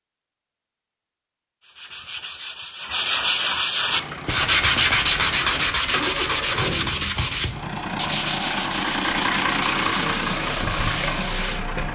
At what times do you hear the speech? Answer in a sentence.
You can't hear the speech here.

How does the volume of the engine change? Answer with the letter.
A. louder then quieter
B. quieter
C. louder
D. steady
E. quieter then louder
C.